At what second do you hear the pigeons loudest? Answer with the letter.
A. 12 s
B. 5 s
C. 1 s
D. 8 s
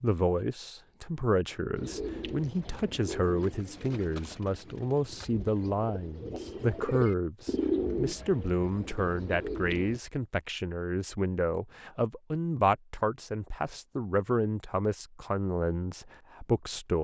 D.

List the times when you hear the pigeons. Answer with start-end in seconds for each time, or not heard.
1.8-10.0.